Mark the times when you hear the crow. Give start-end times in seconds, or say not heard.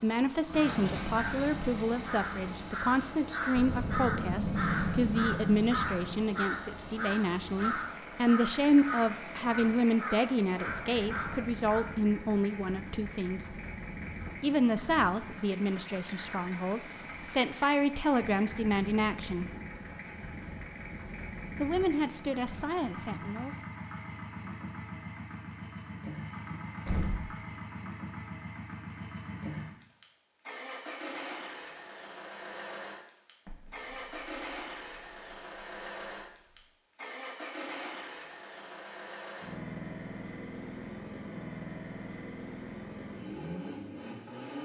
0.5-11.9.